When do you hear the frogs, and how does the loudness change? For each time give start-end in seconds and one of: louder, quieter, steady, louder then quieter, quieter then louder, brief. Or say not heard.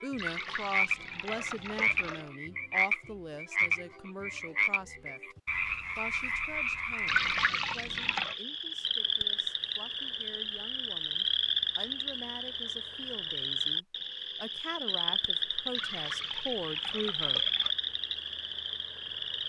0.0-19.4 steady.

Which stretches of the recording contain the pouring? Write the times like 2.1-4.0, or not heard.
0.1-2.3, 7.0-8.3, 15.7-17.7.